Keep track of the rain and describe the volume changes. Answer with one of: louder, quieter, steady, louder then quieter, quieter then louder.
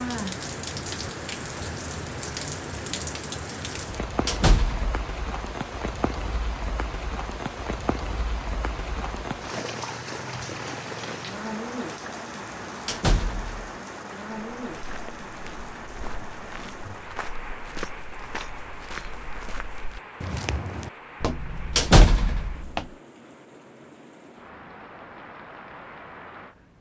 quieter.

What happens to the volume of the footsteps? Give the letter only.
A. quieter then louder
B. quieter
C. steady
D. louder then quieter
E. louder
E.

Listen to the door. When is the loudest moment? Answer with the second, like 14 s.
22 s.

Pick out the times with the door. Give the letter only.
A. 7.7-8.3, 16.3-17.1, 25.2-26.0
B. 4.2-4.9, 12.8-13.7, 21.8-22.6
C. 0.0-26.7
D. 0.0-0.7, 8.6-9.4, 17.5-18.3
B.